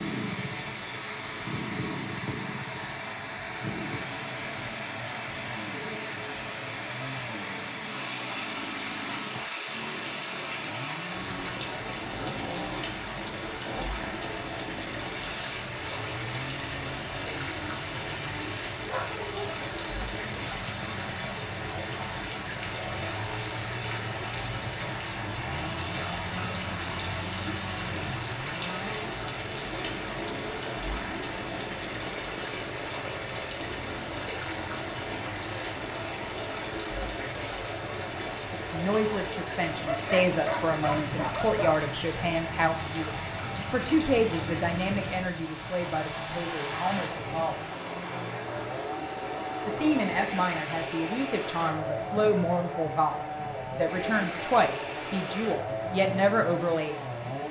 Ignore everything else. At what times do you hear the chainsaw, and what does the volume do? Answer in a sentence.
You can hear the chainsaw from 0.0 to 57.4 s, at a steady volume.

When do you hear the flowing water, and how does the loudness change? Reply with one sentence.
You can hear the flowing water from 0.0 to 57.4 s, at a steady volume.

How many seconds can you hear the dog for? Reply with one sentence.
The dog can be heard for 3 seconds in total.